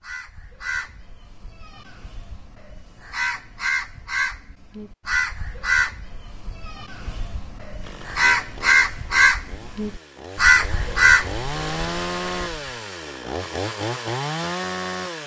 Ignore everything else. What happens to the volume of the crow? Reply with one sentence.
The loudness of the crow goes up.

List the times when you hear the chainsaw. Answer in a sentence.
The chainsaw can be heard from 7.8 to 15.2 s.